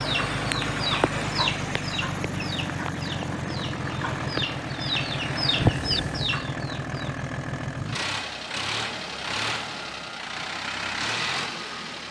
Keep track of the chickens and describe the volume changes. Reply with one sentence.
The loudness of the chickens goes down, then up.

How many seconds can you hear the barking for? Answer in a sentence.
You can't hear the barking here.